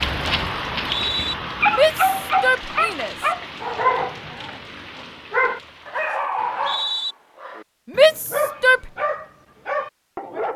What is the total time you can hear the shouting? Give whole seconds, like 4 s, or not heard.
2 s.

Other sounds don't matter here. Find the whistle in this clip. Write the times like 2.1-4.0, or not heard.
0.8-1.4, 6.3-7.2.